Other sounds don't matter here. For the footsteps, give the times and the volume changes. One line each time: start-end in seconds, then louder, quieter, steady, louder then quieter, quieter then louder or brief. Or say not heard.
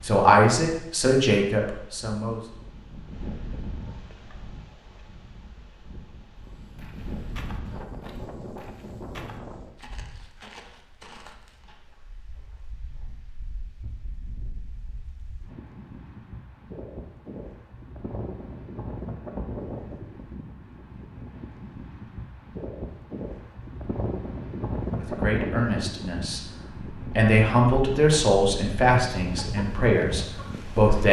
6.6-13.2 quieter.